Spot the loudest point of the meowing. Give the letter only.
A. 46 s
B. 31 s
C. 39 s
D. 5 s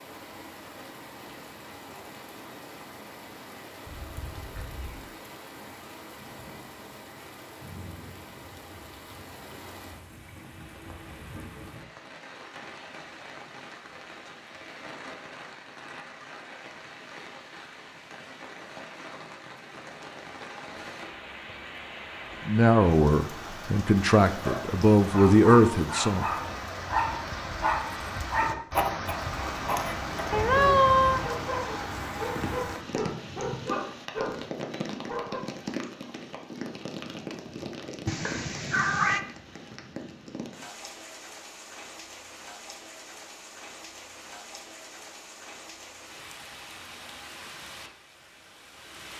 B.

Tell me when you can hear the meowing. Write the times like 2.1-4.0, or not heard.
3.9-5.0, 30.3-31.3, 38.0-39.2.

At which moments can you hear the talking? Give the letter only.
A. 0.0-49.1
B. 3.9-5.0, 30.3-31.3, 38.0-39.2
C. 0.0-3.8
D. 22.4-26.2
D.